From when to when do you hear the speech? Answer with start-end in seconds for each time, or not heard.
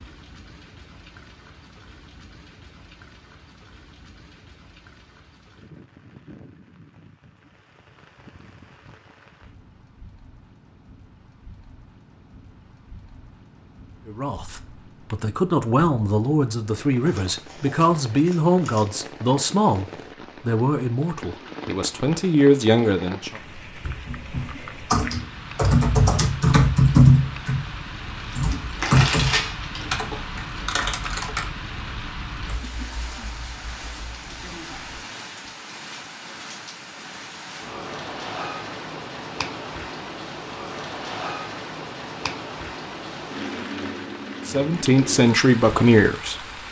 14.1-23.4, 44.5-46.5.